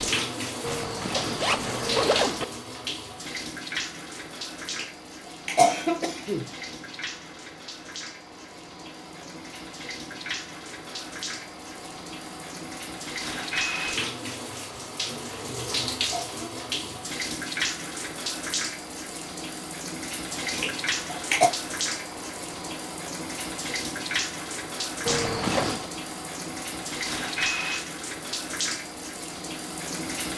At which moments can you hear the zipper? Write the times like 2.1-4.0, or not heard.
0.6-2.5, 25.1-25.9.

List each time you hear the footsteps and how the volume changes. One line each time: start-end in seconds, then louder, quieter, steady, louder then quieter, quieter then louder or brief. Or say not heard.
not heard.